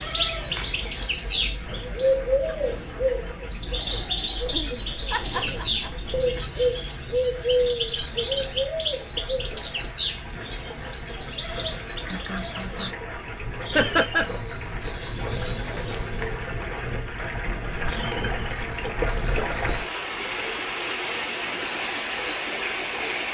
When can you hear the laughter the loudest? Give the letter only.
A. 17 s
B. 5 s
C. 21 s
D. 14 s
D.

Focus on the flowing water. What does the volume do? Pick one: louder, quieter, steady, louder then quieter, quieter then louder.
louder.